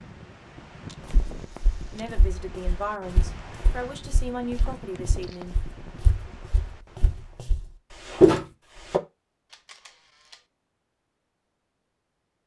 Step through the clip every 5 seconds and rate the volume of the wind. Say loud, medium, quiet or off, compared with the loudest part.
loud, loud, off.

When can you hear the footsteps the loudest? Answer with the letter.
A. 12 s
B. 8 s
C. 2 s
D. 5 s
B.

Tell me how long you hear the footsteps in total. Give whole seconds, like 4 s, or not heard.
8 s.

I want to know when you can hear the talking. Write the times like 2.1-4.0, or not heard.
1.9-5.5.